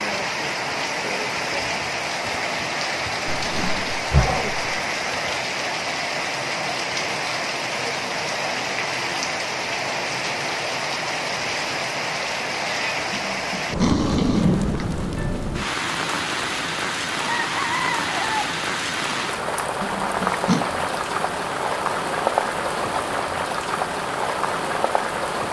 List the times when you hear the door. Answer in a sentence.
The door can't be heard in this clip.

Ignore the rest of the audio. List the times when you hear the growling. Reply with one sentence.
You can hear the growling from 3.2 to 4.7 s, from 13.1 to 14.8 s and from 19.8 to 20.6 s.